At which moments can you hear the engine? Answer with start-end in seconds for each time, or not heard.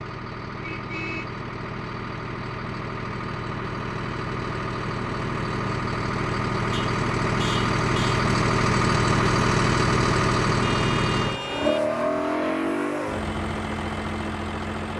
0.0-14.9.